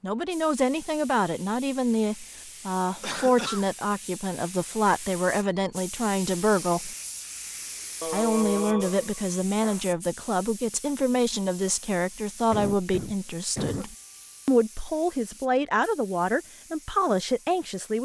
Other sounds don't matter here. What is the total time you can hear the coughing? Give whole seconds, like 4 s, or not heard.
4 s.